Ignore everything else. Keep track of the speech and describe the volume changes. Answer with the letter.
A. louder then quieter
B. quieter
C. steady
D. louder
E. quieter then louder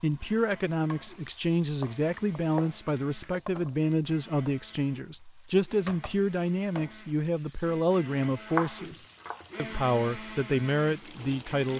C.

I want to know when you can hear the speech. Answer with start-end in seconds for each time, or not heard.
0.0-11.7.